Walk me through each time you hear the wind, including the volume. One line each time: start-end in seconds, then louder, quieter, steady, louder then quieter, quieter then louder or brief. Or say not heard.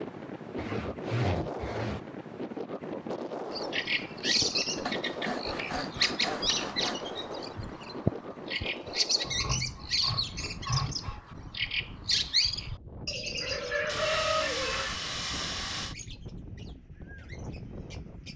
0.0-18.3 quieter.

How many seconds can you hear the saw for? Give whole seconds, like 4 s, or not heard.
8 s.